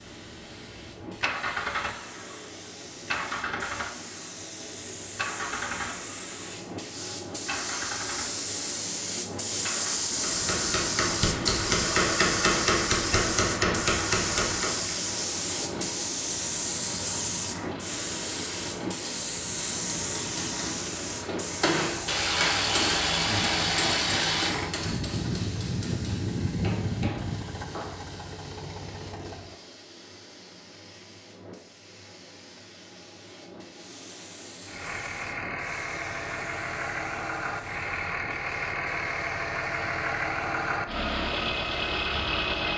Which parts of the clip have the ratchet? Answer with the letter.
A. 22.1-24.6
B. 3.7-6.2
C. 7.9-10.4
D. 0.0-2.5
A.